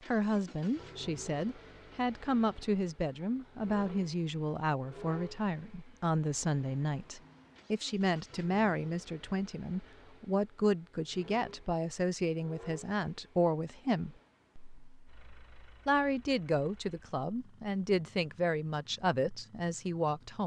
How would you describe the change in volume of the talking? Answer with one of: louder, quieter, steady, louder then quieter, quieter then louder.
steady.